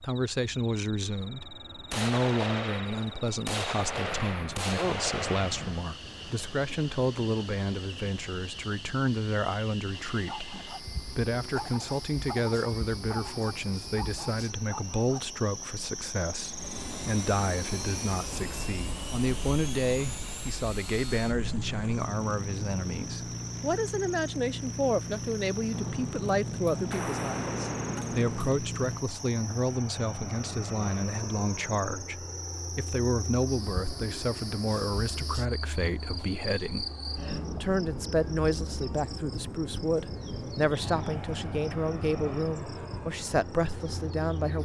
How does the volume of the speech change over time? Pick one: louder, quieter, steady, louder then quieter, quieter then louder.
steady.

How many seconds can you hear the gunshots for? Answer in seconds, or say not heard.
7 s.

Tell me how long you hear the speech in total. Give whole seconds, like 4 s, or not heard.
44 s.